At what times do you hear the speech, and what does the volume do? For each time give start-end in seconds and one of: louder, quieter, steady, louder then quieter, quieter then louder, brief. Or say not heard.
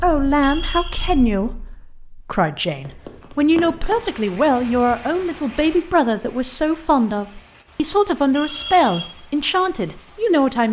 0.0-10.6 steady.